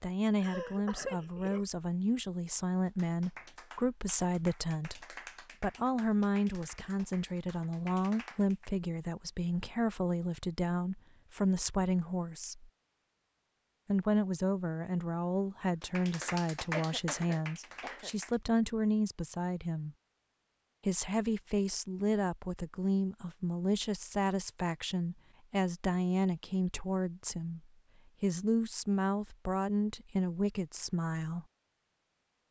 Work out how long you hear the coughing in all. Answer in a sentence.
The coughing can be heard for 3 seconds in total.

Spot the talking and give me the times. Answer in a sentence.
The talking can be heard from 0.0 to 12.7 s, from 13.8 to 19.9 s, from 20.9 to 27.6 s and from 28.2 to 31.4 s.